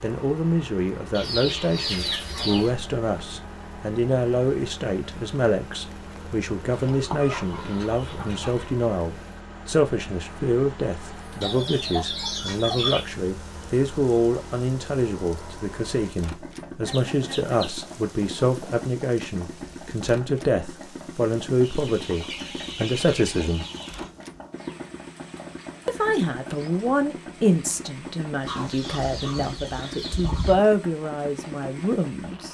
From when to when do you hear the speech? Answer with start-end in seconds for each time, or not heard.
0.0-23.6, 25.9-32.4.